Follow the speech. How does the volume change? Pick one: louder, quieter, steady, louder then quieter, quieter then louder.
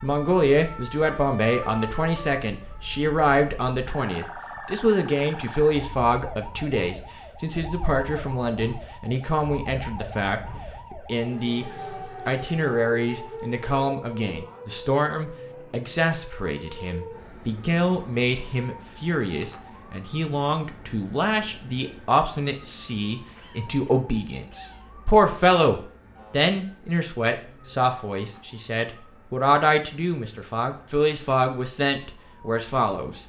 steady.